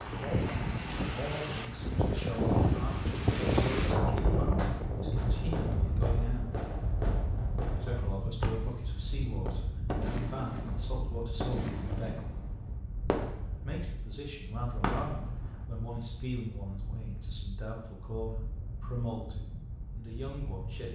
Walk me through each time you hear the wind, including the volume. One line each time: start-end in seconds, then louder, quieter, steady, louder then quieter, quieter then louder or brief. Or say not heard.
0.0-20.8 quieter.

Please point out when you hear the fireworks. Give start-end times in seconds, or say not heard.
4.4-13.8, 14.7-15.7.